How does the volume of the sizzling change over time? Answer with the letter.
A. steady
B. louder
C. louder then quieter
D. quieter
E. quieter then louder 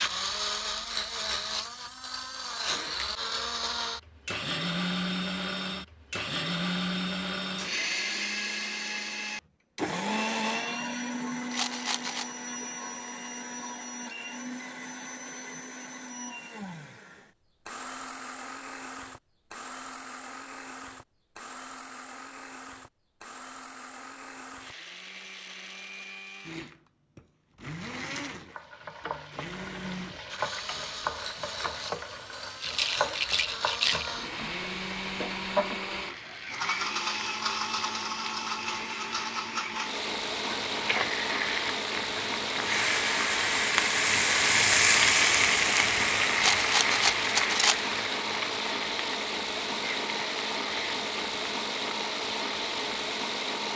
C.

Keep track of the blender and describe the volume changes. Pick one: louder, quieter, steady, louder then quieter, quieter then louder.
quieter then louder.